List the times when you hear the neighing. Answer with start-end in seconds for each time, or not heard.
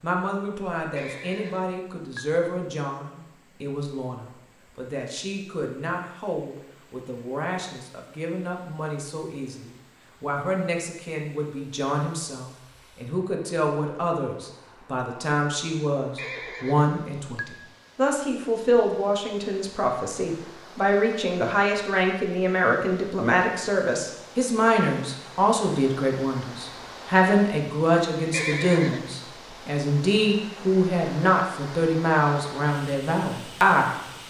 0.9-2.4, 16.1-17.7, 28.3-29.1.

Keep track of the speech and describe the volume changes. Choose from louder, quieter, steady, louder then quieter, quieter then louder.
louder.